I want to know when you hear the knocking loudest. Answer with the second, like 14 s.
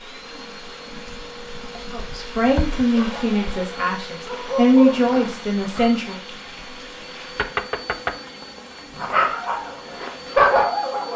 8 s.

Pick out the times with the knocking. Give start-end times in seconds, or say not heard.
2.0-2.9, 7.3-8.3.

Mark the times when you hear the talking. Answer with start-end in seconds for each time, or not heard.
1.9-6.2.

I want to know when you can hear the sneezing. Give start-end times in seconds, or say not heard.
not heard.